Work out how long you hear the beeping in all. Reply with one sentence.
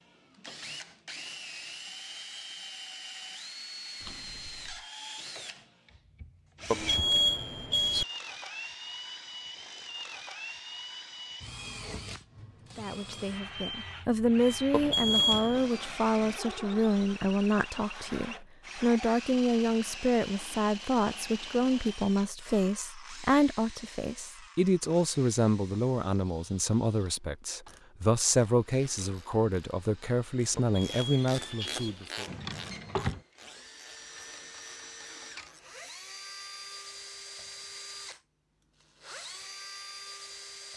The beeping can be heard for 4 seconds in total.